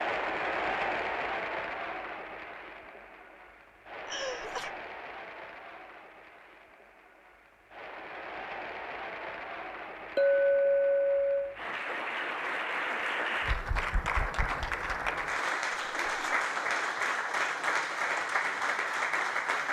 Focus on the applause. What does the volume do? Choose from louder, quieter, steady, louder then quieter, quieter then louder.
quieter then louder.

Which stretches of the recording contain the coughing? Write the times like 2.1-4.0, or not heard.
4.0-4.7.